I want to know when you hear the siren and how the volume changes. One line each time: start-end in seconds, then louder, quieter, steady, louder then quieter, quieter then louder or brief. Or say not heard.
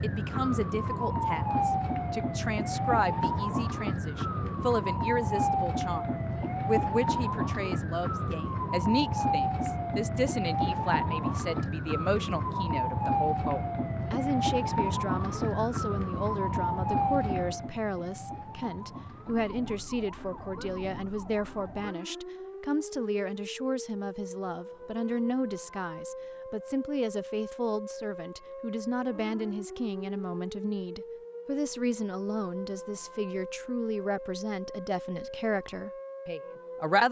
0.0-37.0 quieter.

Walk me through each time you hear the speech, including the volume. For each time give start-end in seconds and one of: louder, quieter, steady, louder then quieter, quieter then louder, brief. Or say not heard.
0.0-37.0 steady.